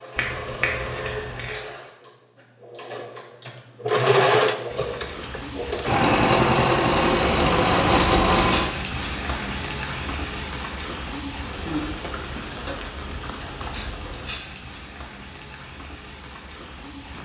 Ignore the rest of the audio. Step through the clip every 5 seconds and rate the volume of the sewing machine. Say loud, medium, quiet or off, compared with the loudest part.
medium, loud, off, off.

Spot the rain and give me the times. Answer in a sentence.
You can hear the rain from 4.7 to 17.2 s.